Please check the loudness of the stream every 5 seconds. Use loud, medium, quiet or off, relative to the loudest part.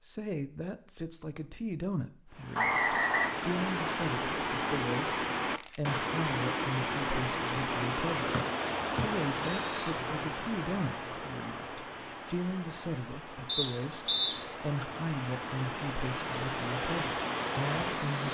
loud, loud, medium, loud.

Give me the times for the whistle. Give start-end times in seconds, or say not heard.
2.5-3.3, 8.3-9.9, 13.4-14.3.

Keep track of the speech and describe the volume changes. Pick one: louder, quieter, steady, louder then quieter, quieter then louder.
steady.